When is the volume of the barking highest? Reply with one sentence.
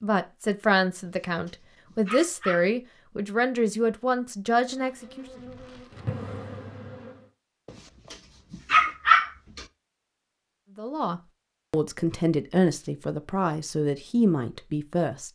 The loudest moment of the barking is at 9 seconds.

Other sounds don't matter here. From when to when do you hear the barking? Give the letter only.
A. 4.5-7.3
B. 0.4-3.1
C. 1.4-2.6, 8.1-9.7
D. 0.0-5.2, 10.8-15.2
C.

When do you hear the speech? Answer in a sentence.
You can hear the speech from 0.0 to 5.2 s and from 10.8 to 15.2 s.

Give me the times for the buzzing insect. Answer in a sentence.
The buzzing insect can be heard from 4.5 to 7.3 s.